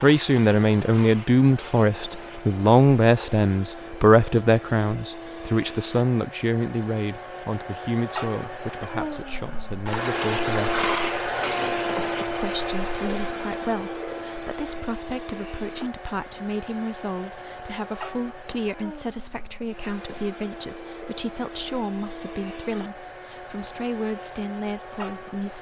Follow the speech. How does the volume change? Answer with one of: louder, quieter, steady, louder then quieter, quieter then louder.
quieter.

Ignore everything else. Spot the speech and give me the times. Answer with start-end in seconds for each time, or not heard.
0.0-10.8, 12.2-25.5.